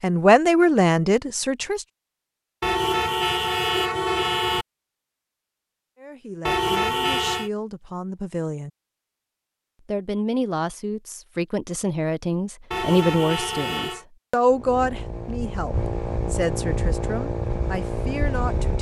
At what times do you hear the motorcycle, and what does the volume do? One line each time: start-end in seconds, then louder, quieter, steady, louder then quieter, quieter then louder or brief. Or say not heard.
14.5-18.7 louder.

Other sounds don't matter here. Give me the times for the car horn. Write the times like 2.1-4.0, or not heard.
2.6-4.7, 6.5-7.5, 12.7-14.1.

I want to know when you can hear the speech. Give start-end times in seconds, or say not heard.
0.0-1.9, 6.0-8.7, 9.8-18.7.